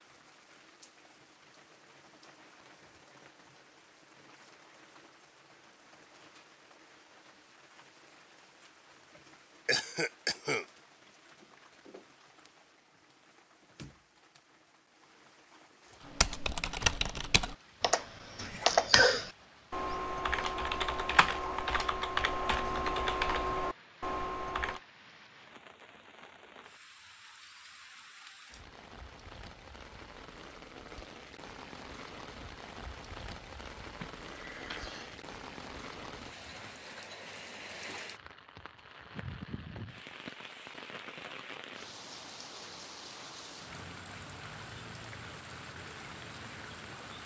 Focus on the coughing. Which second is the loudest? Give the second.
19 s.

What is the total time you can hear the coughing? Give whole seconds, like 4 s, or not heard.
3 s.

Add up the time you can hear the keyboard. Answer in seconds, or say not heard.
9 s.